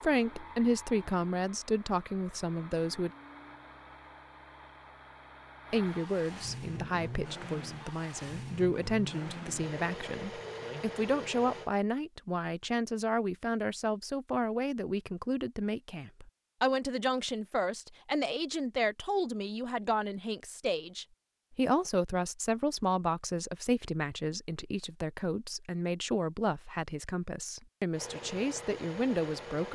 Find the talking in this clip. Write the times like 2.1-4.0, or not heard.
0.0-3.1, 5.7-29.7.